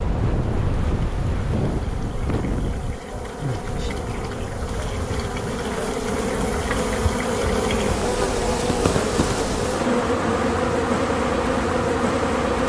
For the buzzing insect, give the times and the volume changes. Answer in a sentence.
You can hear the buzzing insect from 0.1 to 12.6 s, getting louder.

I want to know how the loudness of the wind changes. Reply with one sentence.
The loudness of the wind goes down.